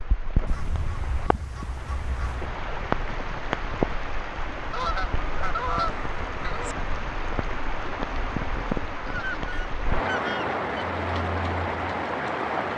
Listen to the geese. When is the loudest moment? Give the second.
6 s.